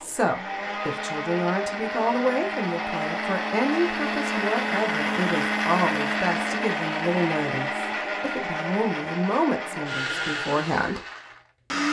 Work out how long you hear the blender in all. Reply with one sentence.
The blender can be heard for 12 seconds in total.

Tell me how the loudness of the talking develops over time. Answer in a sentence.
The loudness of the talking stays about the same.